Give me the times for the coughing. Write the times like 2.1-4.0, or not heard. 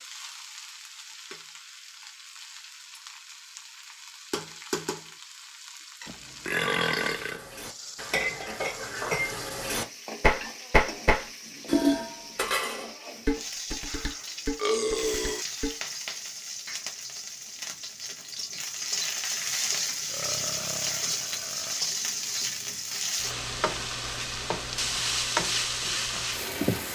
not heard.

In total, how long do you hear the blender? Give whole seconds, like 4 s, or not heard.
not heard.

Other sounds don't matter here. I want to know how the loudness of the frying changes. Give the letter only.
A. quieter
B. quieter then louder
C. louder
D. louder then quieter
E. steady
C.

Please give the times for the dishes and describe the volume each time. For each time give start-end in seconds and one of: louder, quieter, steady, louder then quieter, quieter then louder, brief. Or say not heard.
7.0-15.8 louder then quieter.